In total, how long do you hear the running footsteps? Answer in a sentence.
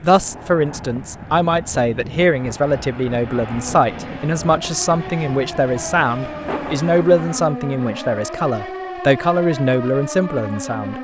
The running footsteps can't be heard in this clip.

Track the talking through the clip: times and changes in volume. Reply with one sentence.
You can hear the talking from 0.0 to 10.9 s, at a steady volume.